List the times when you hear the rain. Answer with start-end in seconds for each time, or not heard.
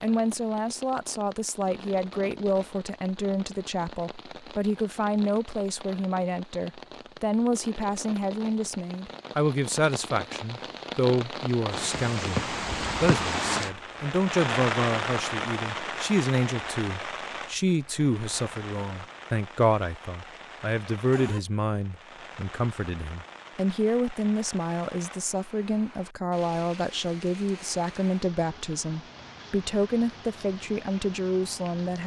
0.0-32.0.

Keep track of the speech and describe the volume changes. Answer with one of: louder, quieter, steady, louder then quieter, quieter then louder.
steady.